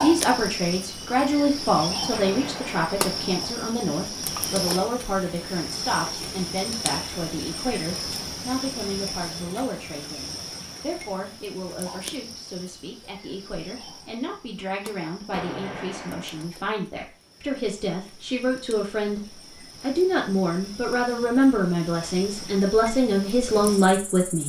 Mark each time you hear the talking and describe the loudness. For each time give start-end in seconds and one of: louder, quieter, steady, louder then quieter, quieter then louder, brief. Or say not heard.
0.0-24.4 quieter then louder.